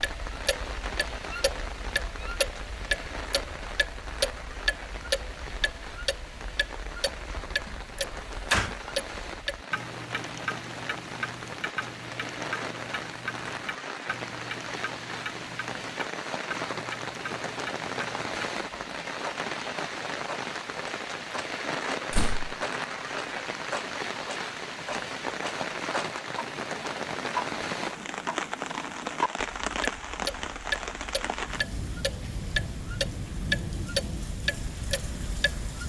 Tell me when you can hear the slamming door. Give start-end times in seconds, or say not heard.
7.7-8.8, 22.1-22.6.